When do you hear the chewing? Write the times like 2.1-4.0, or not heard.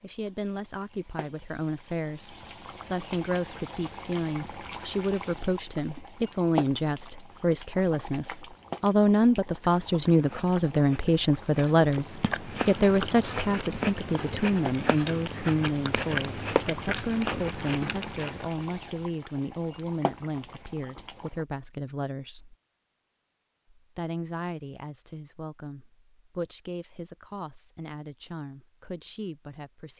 9.8-18.4.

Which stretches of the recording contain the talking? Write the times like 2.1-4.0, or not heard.
0.0-22.6, 23.8-29.9.